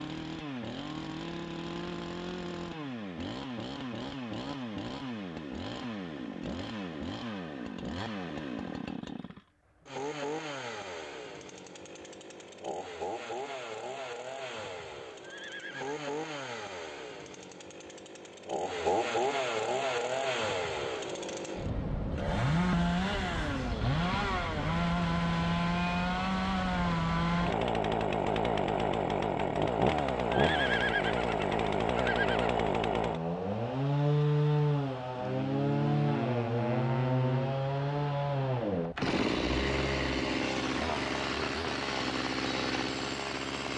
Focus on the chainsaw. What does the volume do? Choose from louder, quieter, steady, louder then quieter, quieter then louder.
louder.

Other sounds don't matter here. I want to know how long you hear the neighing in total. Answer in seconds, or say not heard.
3 s.